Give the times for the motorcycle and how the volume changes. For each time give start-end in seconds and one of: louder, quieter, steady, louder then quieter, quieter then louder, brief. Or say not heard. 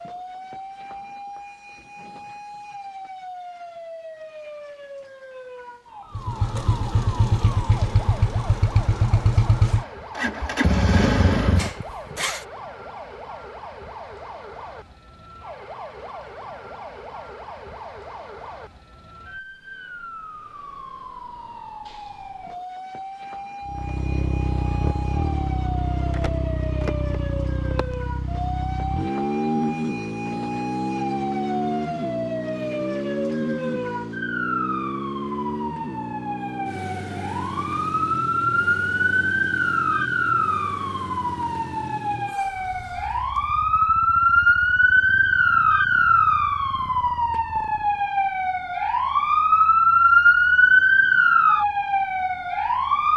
6.2-12.4 steady
23.6-48.1 quieter.